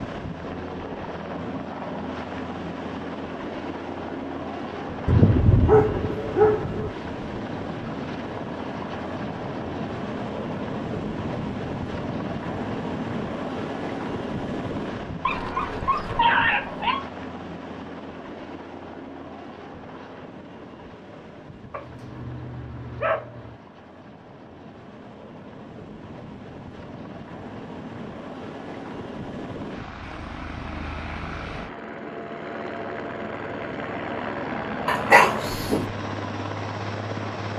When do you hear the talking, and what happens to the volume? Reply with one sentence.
The talking can't be heard in this clip.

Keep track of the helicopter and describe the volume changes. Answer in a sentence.
The volume of the helicopter goes down, then up.